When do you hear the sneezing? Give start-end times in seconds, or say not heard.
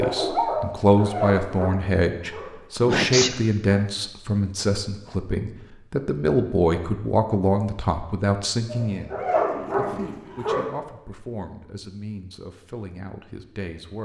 2.8-3.4.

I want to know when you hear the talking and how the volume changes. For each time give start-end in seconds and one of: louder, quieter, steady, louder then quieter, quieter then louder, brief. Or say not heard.
0.0-14.0 quieter.